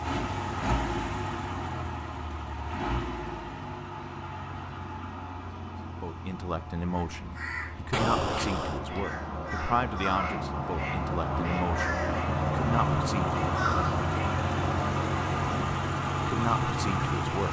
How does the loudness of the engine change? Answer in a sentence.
The volume of the engine goes down, then up.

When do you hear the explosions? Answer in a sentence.
You can hear the explosions from 7.9 to 8.8 s.